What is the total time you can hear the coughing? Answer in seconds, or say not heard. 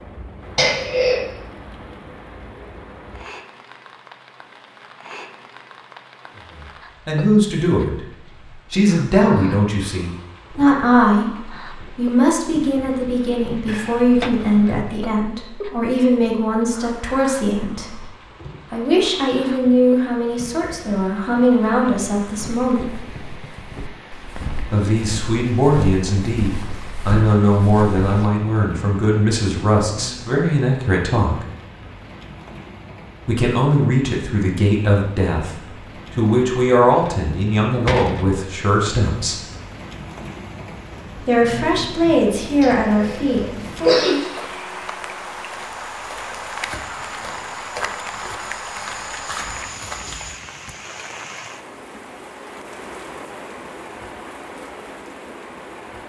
2 s.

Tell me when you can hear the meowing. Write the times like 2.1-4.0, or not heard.
not heard.